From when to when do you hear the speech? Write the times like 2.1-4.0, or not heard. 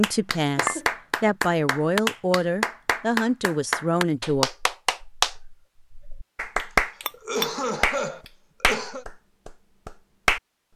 0.0-4.5.